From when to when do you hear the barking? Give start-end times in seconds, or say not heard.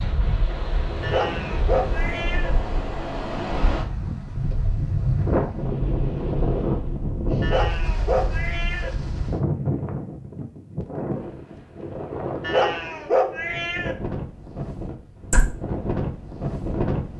1.0-2.5, 7.4-8.9, 12.4-13.9.